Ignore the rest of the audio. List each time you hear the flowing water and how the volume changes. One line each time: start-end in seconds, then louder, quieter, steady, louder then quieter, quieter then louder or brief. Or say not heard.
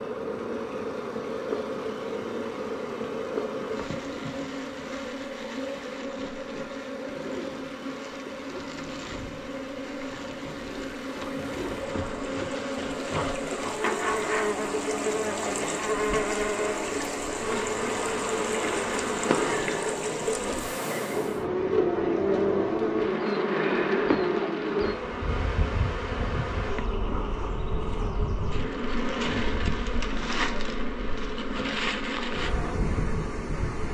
0.0-21.4 louder.